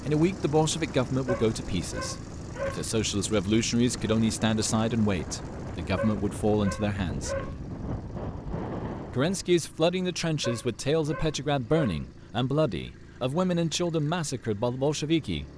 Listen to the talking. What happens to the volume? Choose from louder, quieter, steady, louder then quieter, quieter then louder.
steady.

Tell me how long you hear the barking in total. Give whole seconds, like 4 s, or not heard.
5 s.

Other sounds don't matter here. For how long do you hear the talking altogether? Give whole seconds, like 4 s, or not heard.
14 s.